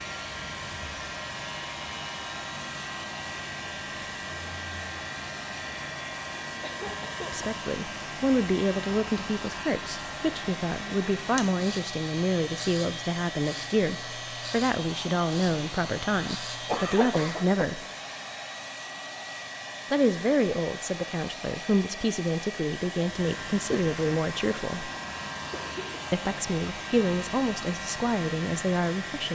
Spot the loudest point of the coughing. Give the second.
17 s.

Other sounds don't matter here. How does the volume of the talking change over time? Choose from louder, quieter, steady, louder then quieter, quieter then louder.
steady.